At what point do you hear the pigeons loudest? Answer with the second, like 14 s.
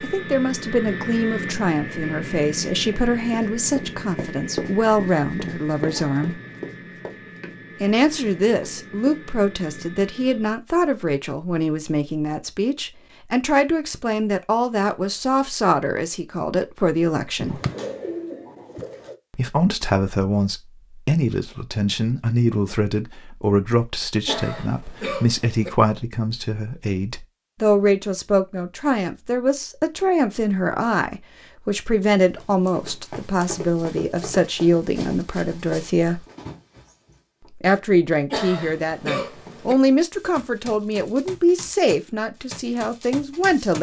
18 s.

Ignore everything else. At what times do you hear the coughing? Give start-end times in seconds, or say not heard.
5.9-6.5, 24.2-25.7, 38.3-39.8.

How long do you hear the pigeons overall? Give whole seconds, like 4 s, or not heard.
2 s.